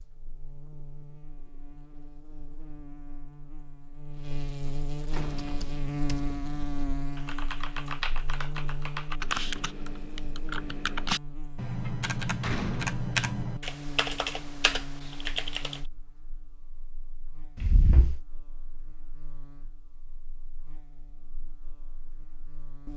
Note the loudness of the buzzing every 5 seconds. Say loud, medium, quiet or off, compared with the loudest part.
medium, loud, medium, quiet, quiet.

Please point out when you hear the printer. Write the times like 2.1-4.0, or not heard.
not heard.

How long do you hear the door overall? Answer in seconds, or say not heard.
2 s.